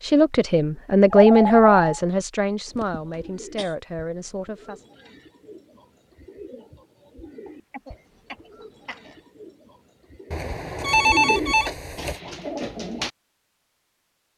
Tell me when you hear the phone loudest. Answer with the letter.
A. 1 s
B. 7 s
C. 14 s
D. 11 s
D.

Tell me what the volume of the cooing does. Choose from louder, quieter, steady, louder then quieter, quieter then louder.
louder.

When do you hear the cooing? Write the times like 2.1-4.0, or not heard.
2.6-13.1.